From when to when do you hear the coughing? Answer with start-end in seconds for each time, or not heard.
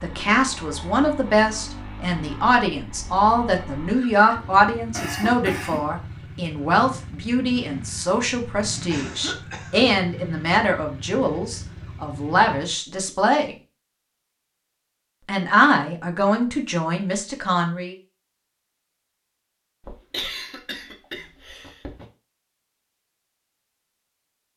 4.9-5.9, 8.8-9.9, 19.8-22.1.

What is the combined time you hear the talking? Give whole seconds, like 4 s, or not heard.
16 s.